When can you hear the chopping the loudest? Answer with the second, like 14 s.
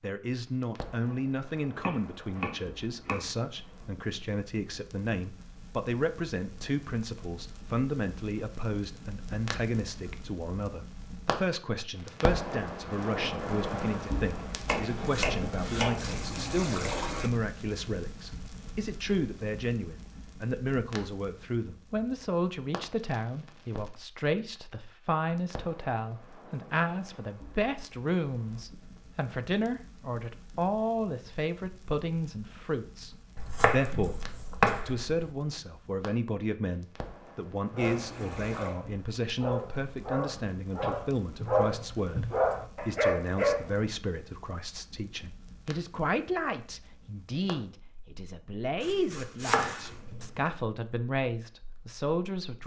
35 s.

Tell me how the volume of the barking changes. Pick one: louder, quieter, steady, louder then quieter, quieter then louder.
louder.